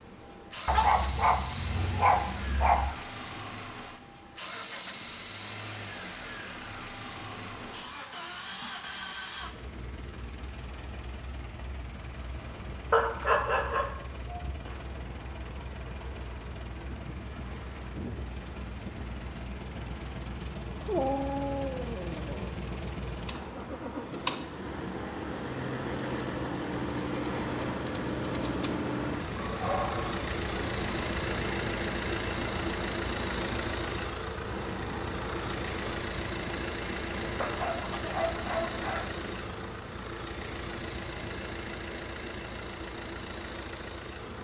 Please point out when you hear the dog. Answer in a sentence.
You can hear the dog from 0.7 to 2.9 s, from 12.9 to 14.6 s, from 20.9 to 22.6 s, from 29.4 to 30.2 s and from 37.4 to 39.2 s.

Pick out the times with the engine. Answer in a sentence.
You can hear the engine from 0.0 to 44.4 s.